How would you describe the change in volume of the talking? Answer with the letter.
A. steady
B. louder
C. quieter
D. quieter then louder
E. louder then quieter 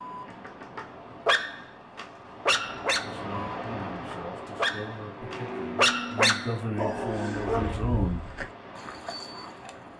B.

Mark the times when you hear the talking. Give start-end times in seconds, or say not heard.
3.0-8.2.